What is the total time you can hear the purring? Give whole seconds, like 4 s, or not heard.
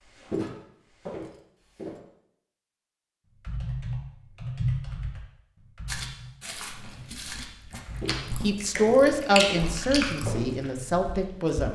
not heard.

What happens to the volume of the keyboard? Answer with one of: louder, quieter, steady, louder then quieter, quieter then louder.
quieter then louder.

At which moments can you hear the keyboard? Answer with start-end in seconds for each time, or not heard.
3.4-9.1.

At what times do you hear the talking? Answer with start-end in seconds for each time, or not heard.
8.4-11.7.